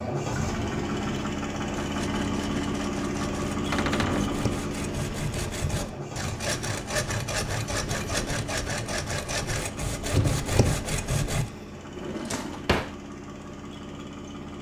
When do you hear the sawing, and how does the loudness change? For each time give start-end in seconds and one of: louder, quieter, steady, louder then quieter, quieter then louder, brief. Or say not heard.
1.7-11.5 louder.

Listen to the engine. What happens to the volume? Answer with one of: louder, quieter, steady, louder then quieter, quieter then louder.
quieter.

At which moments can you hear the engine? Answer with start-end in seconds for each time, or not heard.
0.0-14.5.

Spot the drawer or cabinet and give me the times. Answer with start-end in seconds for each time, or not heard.
3.7-4.5, 11.9-12.9.